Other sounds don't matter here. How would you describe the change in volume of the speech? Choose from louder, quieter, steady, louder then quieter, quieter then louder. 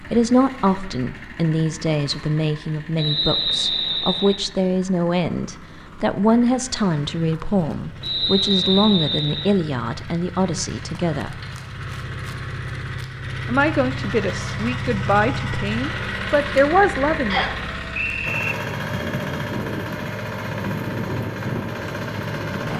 steady.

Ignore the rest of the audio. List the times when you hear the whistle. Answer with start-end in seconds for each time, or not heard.
3.0-4.4, 8.0-9.5, 17.3-18.6.